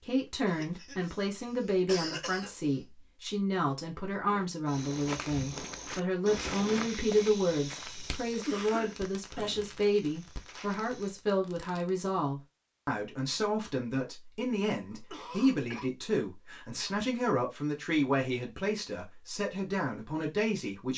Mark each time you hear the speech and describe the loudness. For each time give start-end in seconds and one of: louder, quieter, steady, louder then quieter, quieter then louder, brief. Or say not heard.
0.1-20.9 steady.